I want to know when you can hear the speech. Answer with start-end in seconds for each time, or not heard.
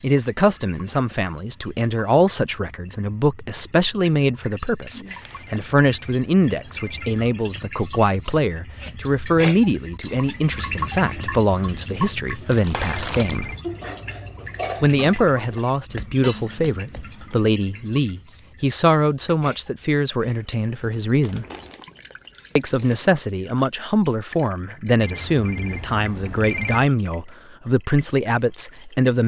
0.0-13.5, 14.8-21.4, 22.6-29.2.